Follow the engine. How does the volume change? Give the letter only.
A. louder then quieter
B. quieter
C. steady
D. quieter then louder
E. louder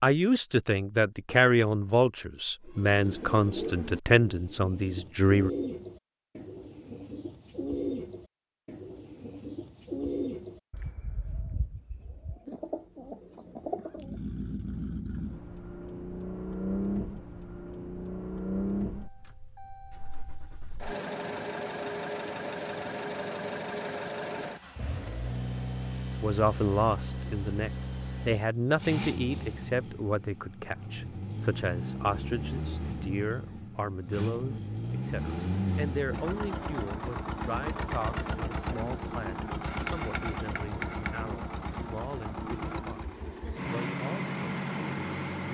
C.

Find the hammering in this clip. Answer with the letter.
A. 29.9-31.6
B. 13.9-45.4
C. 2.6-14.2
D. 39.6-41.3
D.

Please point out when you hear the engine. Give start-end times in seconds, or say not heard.
13.9-45.4.